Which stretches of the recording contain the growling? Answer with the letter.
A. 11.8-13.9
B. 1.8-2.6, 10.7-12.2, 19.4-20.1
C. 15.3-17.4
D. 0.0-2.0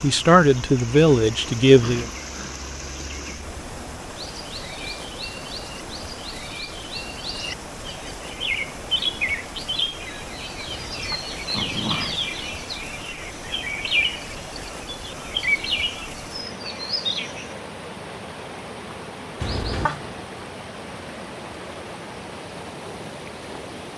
B.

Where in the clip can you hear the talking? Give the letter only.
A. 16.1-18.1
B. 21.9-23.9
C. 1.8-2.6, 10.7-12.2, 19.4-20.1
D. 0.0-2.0
D.